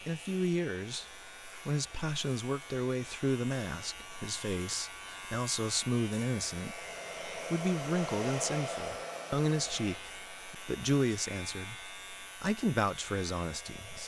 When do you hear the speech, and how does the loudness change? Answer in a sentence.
You can hear the speech from 0.1 to 14.0 s, at a steady volume.